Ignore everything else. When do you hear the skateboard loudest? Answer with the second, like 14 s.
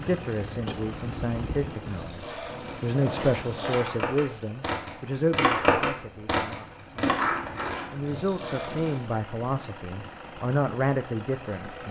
6 s.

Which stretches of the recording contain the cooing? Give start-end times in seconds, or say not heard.
not heard.